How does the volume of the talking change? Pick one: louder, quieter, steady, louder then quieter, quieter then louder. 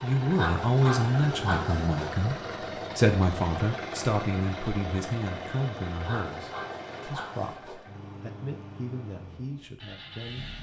quieter.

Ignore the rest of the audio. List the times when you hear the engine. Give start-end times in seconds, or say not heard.
0.0-10.5.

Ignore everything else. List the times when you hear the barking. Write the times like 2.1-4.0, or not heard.
0.3-2.1, 6.0-7.8.